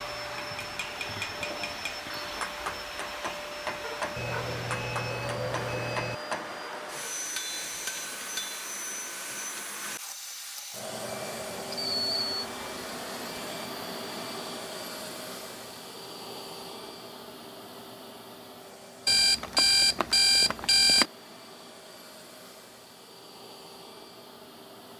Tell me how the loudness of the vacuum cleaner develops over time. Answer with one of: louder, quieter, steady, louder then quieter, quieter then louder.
quieter.